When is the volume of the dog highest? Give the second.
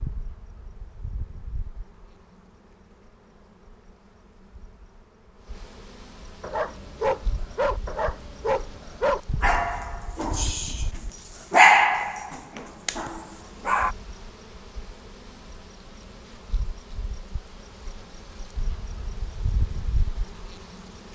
12 s.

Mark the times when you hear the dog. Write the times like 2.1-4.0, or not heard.
6.4-13.9.